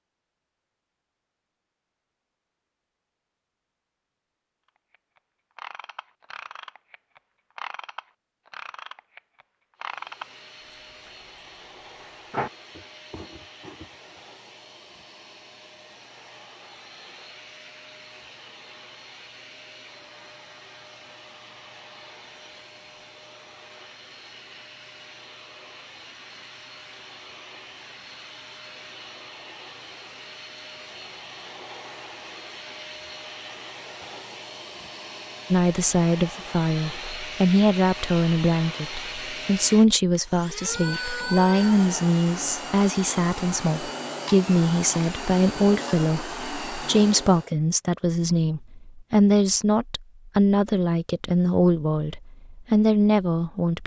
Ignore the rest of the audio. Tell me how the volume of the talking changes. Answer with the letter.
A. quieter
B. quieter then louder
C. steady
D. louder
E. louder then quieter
C.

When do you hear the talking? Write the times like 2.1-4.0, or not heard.
35.5-53.8.